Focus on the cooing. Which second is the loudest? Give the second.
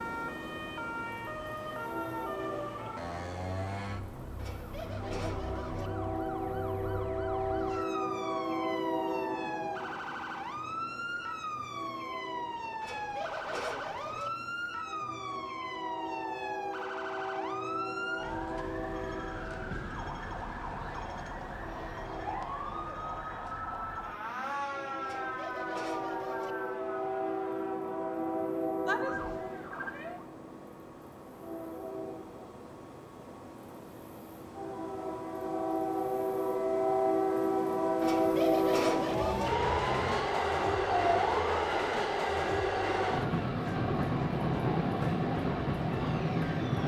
39 s.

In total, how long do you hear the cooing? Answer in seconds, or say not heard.
6 s.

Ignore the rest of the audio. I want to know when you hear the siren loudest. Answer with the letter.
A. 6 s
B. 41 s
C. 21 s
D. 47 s
B.